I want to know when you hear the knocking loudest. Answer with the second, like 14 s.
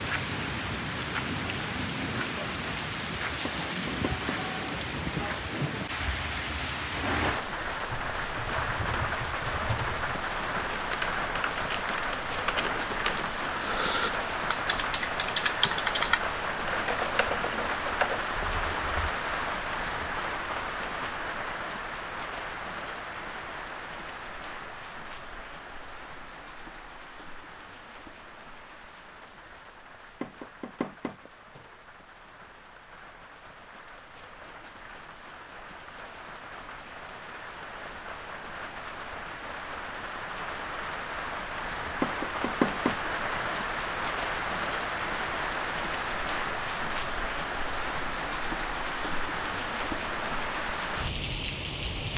43 s.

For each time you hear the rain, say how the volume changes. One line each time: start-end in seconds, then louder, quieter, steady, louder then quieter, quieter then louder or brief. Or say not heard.
0.0-52.1 quieter then louder.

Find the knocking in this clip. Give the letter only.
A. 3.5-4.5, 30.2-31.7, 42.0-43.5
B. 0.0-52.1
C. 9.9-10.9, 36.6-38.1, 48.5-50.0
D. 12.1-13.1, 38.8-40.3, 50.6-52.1
A.